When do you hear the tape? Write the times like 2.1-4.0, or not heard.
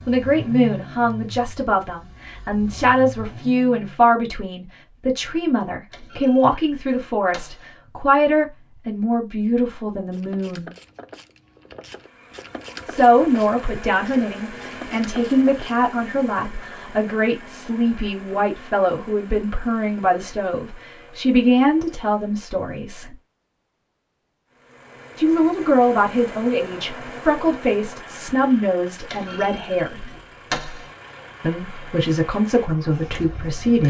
not heard.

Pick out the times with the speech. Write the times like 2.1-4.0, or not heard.
0.1-10.7, 12.8-23.1, 25.1-30.1, 31.4-33.8.